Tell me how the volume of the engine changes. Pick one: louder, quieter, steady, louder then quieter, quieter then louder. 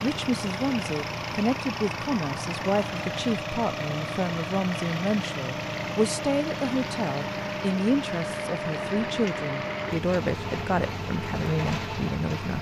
steady.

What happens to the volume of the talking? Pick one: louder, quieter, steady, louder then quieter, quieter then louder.
steady.